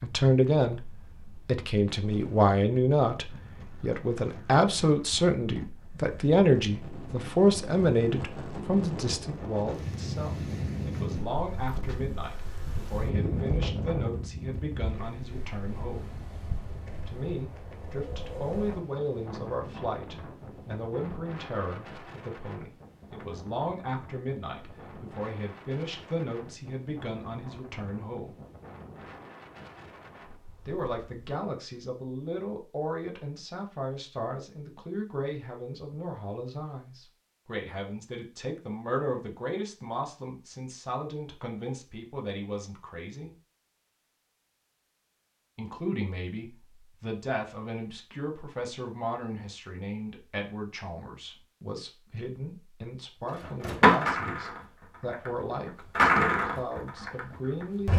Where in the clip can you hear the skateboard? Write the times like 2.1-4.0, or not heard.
53.3-57.9.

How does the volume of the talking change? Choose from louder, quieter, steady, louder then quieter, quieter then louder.
quieter.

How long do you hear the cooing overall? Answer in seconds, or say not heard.
not heard.